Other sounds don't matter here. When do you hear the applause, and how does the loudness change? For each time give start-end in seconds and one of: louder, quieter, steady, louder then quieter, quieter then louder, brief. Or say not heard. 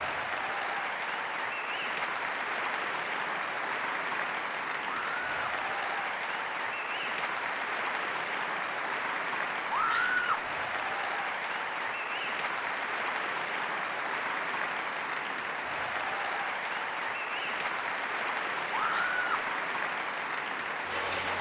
0.0-21.3 steady.